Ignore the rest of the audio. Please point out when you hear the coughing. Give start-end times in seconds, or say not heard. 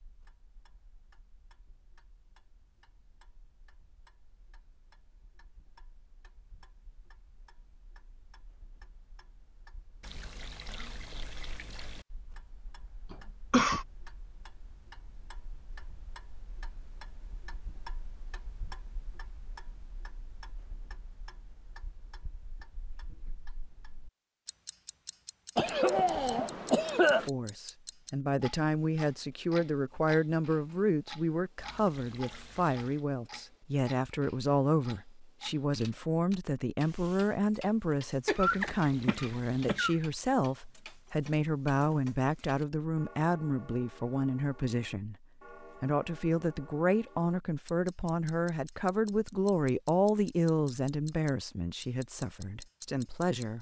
13.1-13.8, 25.6-27.3, 38.2-40.0.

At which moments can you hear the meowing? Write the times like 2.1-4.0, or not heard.
not heard.